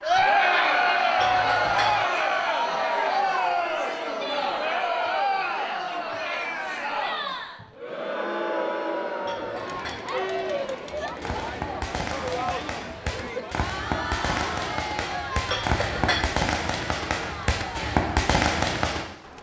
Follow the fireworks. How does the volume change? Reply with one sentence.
The volume of the fireworks goes up.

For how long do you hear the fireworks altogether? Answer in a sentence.
You can hear the fireworks for 8 seconds altogether.